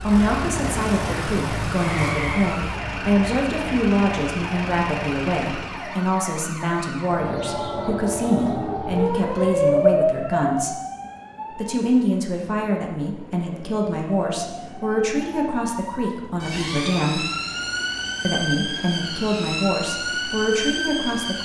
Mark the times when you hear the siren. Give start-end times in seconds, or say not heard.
0.0-21.4.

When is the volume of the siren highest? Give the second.
10 s.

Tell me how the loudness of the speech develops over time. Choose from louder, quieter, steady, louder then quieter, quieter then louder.
steady.